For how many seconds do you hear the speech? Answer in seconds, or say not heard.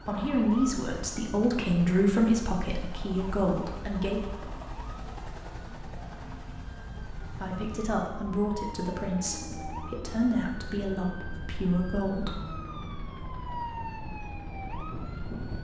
9 s.